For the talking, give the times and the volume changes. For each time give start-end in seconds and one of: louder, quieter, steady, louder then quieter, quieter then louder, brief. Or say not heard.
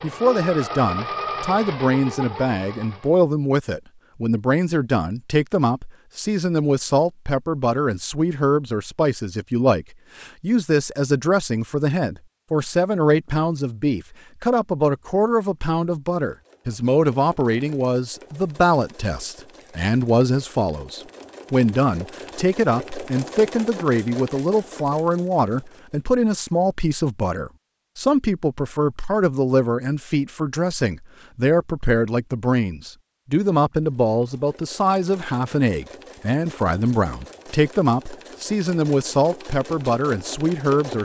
0.0-40.9 steady.